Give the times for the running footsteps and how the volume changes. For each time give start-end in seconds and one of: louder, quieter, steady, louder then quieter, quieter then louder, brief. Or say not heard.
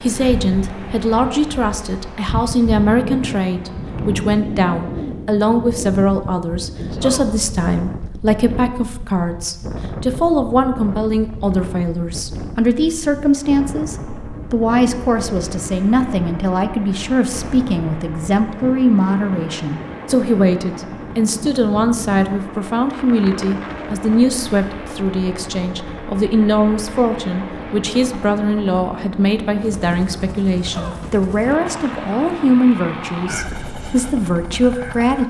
not heard.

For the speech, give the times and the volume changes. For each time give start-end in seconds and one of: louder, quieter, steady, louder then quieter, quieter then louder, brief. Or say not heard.
0.0-35.2 steady.